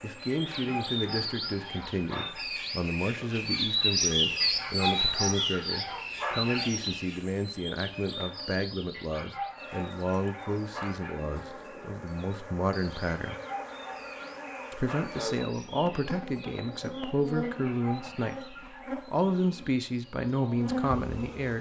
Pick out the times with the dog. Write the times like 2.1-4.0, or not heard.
0.3-2.5, 4.4-6.7, 8.9-11.2, 13.1-15.2, 17.4-19.0.